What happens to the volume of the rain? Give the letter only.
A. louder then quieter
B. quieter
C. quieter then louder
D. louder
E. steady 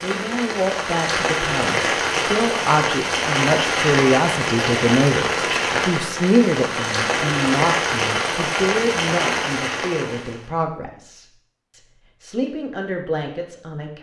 E.